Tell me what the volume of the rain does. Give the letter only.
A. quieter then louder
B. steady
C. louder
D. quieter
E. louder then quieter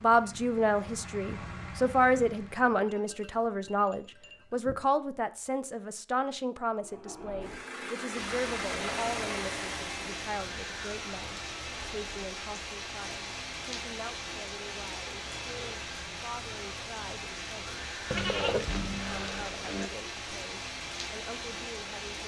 B.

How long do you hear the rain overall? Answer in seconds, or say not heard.
14 s.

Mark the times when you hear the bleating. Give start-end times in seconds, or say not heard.
2.8-4.8, 18.1-19.9.